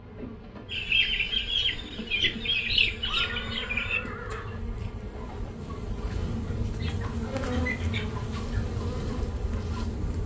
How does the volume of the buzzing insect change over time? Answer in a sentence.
The volume of the buzzing insect goes up.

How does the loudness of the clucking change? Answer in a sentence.
The loudness of the clucking goes down.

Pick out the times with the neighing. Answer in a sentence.
You can hear the neighing from 3.0 to 4.5 s.